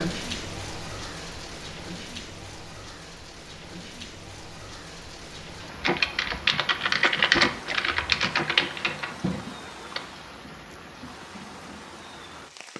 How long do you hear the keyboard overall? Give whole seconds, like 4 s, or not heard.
4 s.